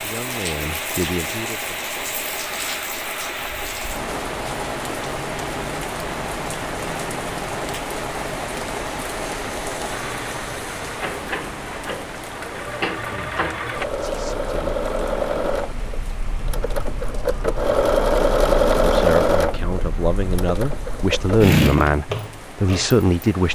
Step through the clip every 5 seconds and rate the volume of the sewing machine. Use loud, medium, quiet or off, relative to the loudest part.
quiet, quiet, medium, loud, loud.